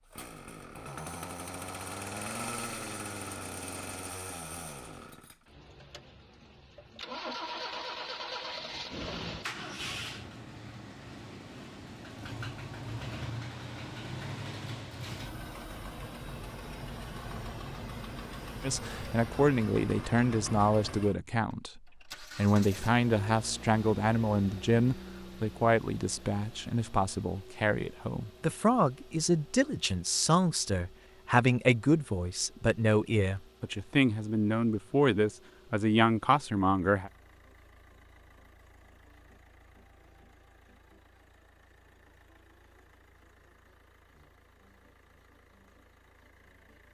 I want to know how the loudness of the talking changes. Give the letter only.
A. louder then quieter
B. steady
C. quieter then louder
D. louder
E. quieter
B.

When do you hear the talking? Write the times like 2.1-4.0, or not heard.
18.6-37.1.